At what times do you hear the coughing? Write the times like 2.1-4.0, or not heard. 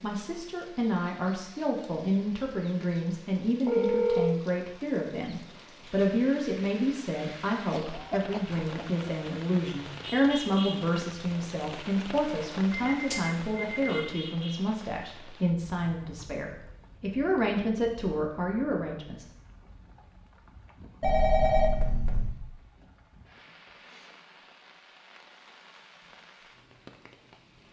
7.7-8.8.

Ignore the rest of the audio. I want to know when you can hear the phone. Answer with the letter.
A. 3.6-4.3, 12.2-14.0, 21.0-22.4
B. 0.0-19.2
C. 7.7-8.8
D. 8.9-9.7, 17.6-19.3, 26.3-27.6
A.